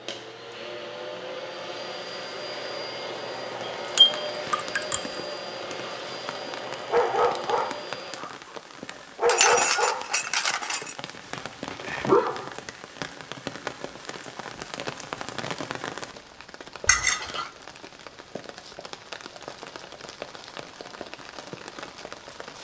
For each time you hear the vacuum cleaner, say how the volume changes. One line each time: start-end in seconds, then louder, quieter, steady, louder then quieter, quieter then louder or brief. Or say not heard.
0.0-8.2 steady.